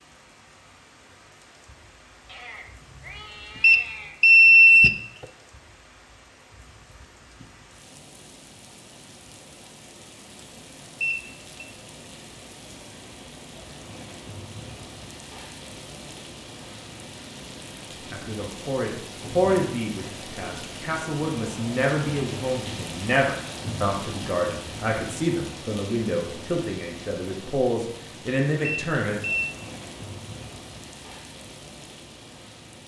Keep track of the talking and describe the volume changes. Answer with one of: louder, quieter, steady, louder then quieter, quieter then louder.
steady.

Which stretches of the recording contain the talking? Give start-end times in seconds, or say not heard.
18.1-29.2.